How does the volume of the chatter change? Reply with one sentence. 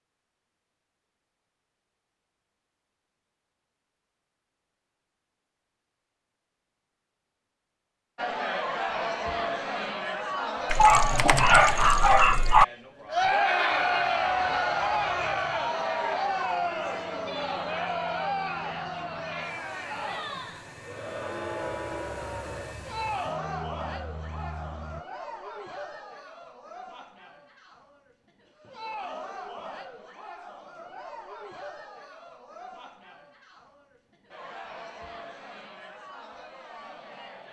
The loudness of the chatter goes down.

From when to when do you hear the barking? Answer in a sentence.
The barking can be heard from 10.7 to 12.7 s.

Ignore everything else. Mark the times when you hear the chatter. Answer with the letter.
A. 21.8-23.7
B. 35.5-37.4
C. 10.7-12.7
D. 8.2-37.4
D.